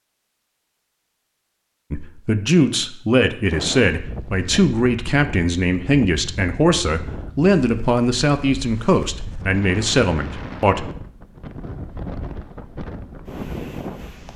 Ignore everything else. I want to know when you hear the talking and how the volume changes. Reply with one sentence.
You can hear the talking from 1.9 to 10.9 s, at a steady volume.